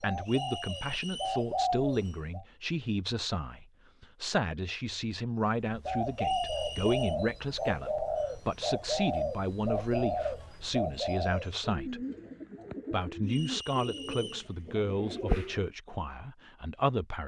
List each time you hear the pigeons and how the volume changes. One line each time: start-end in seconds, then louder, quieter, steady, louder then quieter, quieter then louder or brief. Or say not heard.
0.0-2.4 brief
5.7-15.7 quieter.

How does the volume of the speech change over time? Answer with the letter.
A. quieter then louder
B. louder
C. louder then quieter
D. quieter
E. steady
E.